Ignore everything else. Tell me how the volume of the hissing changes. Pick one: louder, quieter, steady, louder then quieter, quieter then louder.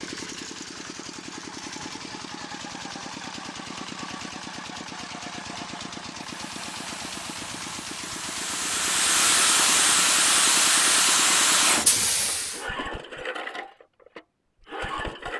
louder.